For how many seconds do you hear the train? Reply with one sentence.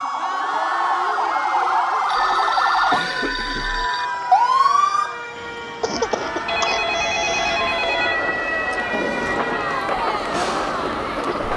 The train can be heard for 6 seconds in total.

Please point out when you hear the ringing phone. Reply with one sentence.
The ringing phone can be heard from 2.0 to 4.0 s and from 6.5 to 8.2 s.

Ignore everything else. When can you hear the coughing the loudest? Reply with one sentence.
The volume of the coughing peaks at 6 seconds.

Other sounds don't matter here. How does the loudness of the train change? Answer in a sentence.
The loudness of the train goes up.